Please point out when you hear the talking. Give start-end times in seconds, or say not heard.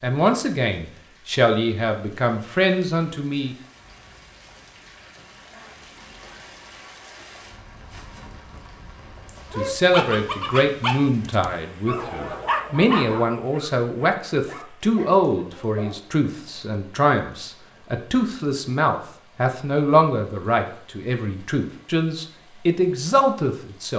0.0-3.5, 9.6-23.9.